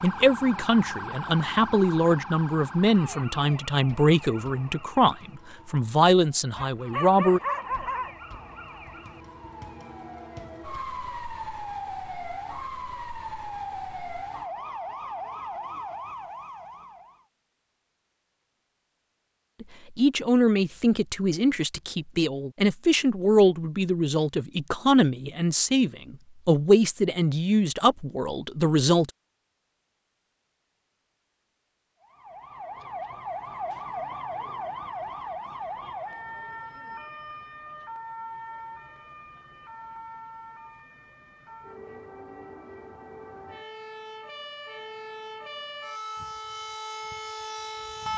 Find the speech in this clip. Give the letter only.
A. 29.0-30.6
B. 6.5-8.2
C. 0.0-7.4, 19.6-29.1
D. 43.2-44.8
C.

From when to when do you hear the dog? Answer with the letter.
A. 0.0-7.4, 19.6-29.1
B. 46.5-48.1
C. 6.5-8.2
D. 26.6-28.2
C.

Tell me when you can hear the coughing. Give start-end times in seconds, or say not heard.
not heard.